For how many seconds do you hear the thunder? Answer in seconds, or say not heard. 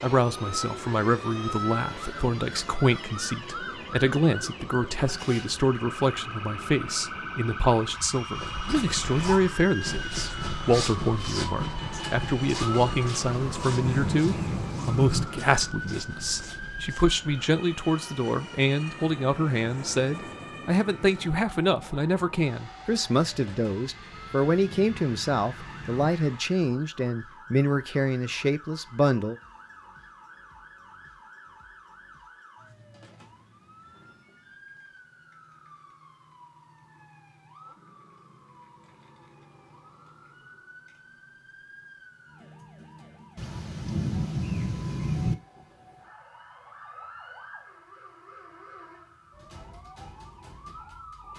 6 s.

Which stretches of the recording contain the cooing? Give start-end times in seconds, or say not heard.
not heard.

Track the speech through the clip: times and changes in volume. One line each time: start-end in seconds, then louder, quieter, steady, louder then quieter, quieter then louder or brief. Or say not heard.
0.0-29.4 steady.